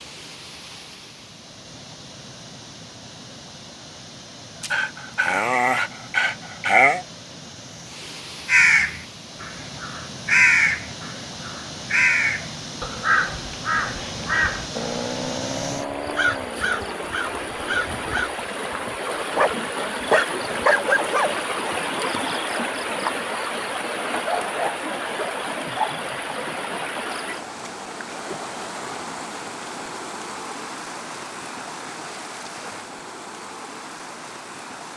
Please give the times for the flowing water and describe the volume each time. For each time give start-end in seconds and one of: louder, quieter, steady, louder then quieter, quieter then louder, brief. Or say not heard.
0.0-34.9 louder then quieter.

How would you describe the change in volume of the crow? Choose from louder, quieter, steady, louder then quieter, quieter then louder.
quieter.